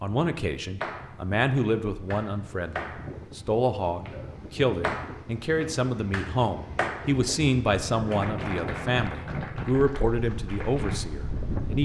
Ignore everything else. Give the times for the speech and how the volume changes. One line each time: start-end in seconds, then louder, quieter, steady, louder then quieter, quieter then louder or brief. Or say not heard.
0.0-11.8 steady.